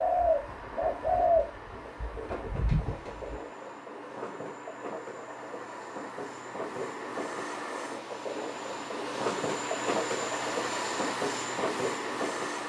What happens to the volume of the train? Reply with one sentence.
The loudness of the train goes up.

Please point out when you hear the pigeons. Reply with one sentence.
You can hear the pigeons from 0.0 to 3.4 s.